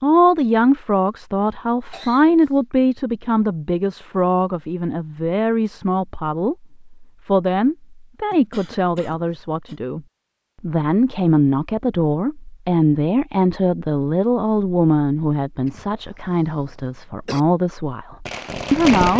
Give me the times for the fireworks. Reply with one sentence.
You can hear the fireworks from 18.2 to 19.1 s.